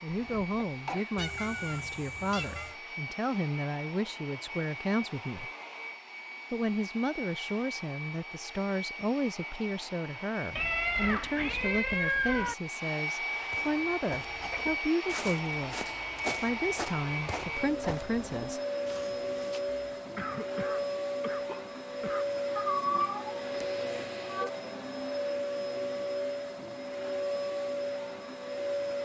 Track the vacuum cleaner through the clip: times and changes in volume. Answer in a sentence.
You can hear the vacuum cleaner from 0.0 to 29.0 s, getting louder.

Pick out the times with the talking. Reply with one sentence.
The talking can be heard from 0.0 to 5.5 s, from 6.5 to 15.8 s and from 16.4 to 18.6 s.